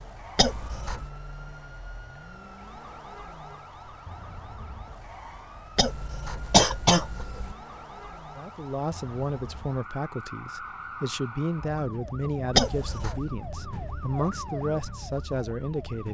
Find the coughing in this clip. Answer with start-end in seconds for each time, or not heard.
0.3-1.1, 5.8-7.5, 12.6-13.2.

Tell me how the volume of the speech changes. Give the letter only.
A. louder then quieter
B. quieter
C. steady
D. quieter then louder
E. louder
C.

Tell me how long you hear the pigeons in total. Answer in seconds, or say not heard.
not heard.